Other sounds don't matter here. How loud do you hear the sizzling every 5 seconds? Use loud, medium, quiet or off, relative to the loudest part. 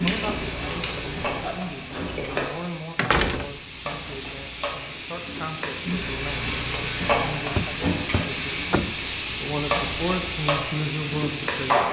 medium, loud, loud.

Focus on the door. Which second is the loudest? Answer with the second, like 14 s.
3 s.